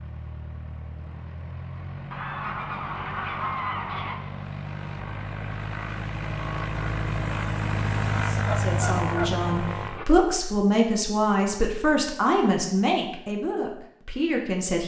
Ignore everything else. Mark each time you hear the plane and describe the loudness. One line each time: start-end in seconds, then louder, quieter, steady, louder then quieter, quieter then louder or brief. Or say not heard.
0.0-10.1 louder.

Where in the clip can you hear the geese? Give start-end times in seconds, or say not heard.
2.1-4.2, 8.4-9.3.